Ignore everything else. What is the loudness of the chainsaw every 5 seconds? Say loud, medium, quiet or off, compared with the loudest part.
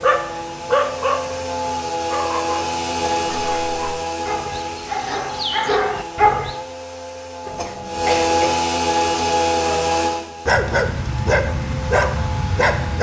loud, loud, medium.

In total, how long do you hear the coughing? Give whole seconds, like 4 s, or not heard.
2 s.